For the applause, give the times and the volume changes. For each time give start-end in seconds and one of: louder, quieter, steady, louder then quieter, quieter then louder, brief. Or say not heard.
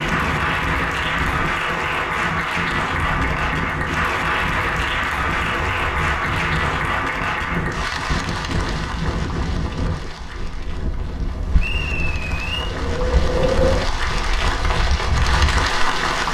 0.0-16.2 quieter then louder.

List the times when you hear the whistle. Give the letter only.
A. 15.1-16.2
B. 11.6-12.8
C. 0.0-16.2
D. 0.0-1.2
B.